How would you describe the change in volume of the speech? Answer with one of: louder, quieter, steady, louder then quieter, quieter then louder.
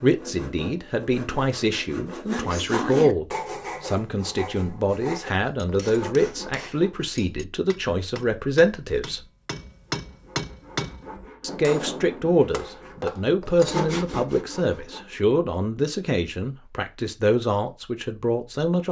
steady.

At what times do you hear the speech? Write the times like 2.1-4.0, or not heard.
0.0-9.2, 11.4-18.8.